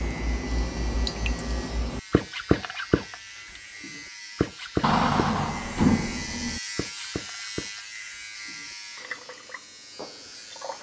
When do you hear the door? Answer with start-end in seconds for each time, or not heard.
4.8-6.6.